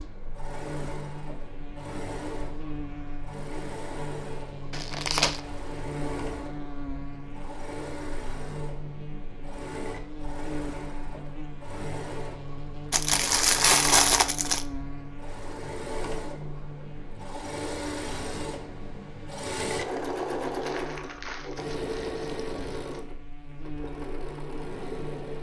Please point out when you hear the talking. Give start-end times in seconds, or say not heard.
not heard.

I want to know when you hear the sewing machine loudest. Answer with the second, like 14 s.
20 s.